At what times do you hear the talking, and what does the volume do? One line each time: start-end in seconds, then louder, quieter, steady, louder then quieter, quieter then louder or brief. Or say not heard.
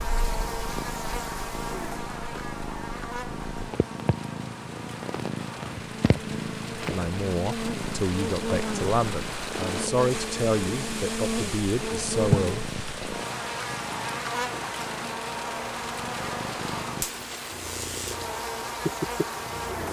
6.9-12.7 steady.